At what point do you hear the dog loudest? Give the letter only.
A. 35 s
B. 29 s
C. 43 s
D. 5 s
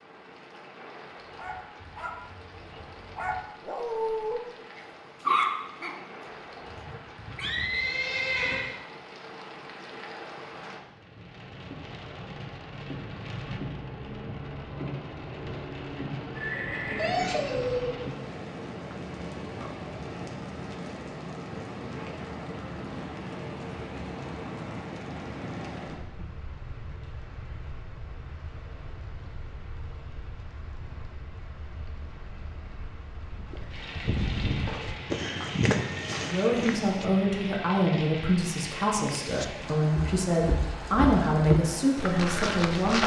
D.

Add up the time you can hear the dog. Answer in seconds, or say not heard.
6 s.